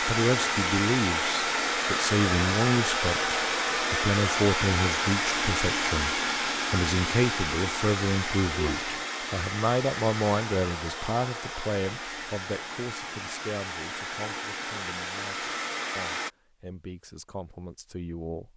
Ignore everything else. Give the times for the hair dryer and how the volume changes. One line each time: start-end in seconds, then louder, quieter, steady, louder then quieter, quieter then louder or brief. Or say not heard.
0.0-16.3 quieter.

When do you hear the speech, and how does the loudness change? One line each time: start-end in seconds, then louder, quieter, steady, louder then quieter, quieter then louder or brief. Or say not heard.
0.0-18.5 quieter.